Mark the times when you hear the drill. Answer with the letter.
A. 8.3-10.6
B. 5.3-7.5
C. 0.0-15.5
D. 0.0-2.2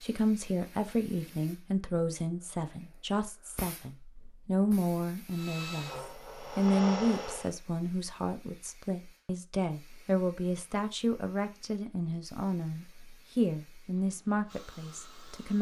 B.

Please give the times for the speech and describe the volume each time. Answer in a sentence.
The speech can be heard from 0.0 to 15.5 s, at a steady volume.